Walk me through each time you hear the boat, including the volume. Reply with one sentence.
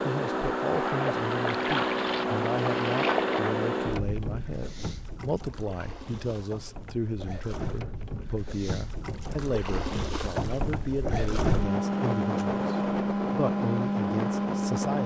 You can hear the boat from 0.0 to 15.0 s, getting quieter then louder.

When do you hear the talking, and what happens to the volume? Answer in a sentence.
You can hear the talking from 0.0 to 15.0 s, at a steady volume.